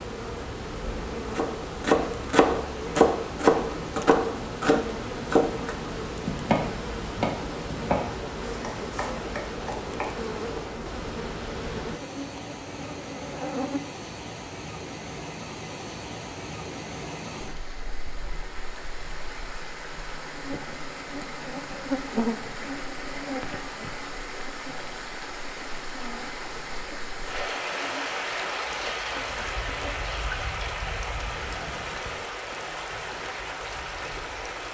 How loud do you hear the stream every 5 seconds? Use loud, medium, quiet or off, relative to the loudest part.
medium, medium, medium, medium, medium, loud, loud.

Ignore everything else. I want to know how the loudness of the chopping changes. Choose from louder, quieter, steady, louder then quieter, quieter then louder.
quieter.